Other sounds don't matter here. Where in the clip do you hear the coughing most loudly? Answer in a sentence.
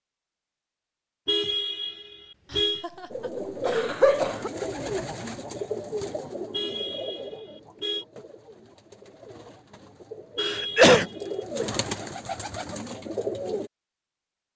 The loudest moment of the coughing is at 11 seconds.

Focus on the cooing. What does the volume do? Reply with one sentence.
The volume of the cooing goes down, then up.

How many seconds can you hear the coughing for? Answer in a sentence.
You can hear the coughing for 2 seconds altogether.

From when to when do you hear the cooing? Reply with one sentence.
The cooing can be heard from 3.1 to 13.7 s.